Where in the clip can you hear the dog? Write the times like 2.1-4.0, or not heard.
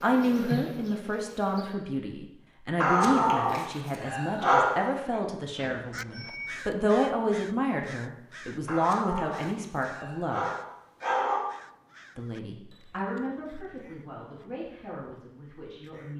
2.8-5.2, 8.7-11.4.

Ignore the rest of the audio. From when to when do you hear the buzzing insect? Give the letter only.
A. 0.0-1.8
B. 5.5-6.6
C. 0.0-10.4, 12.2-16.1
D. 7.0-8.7
A.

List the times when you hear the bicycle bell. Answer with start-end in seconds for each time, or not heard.
5.5-6.6.